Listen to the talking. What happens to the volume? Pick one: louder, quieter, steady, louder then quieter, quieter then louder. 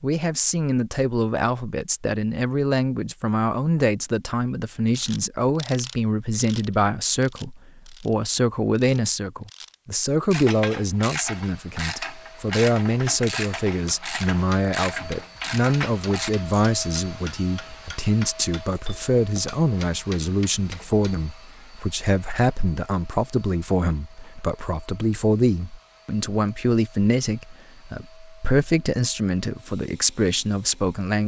steady.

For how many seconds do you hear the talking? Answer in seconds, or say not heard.
31 s.